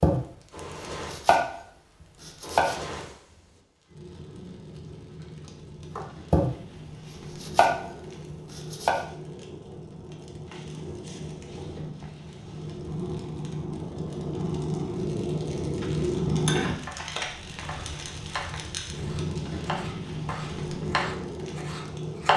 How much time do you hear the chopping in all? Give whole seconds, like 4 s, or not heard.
10 s.